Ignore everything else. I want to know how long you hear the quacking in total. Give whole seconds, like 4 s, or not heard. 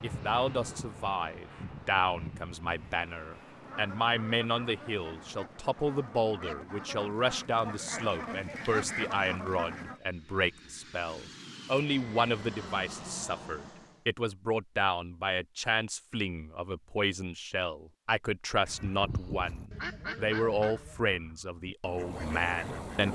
11 s.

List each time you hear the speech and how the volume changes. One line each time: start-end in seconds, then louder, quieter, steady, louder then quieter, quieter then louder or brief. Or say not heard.
0.0-23.0 steady.